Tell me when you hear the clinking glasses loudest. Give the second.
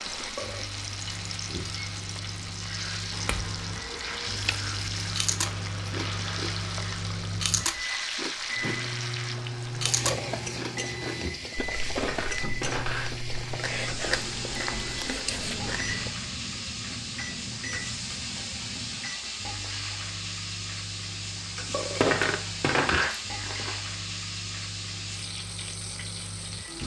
22 s.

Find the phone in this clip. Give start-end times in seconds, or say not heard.
not heard.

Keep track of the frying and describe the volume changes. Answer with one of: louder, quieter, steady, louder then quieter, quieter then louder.
steady.